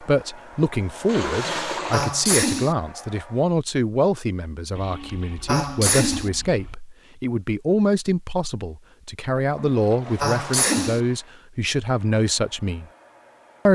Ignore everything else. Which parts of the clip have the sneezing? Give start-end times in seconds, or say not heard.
1.9-2.8, 5.5-6.3, 10.2-11.0.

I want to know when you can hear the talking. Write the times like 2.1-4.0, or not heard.
0.0-12.8.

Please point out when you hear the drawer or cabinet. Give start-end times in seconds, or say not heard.
not heard.